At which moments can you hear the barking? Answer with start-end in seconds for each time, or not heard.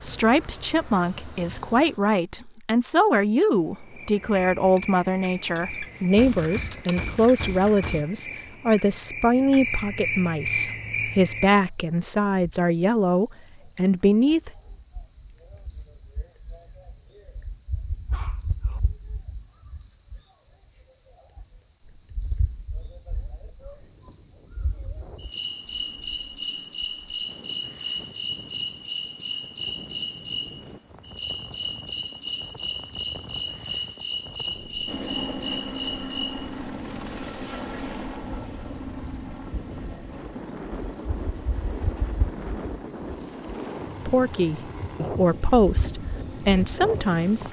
18.1-18.8.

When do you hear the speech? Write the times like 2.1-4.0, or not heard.
0.0-14.5, 44.0-47.4.